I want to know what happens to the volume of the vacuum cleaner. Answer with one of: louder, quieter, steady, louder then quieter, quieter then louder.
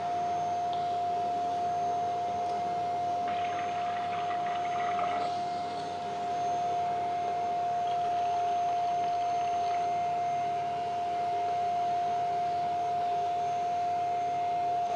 steady.